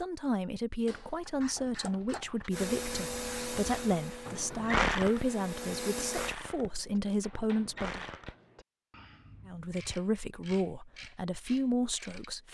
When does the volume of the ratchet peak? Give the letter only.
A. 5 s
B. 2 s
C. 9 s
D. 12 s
A.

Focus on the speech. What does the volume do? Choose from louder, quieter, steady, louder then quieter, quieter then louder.
steady.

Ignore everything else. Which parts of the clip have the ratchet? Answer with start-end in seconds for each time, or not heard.
1.1-12.3.